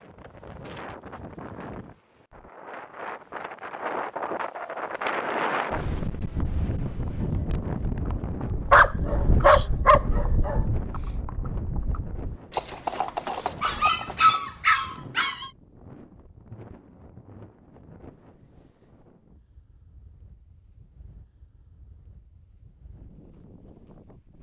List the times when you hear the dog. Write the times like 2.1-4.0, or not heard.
8.7-10.6, 13.6-15.5.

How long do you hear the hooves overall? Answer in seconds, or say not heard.
9 s.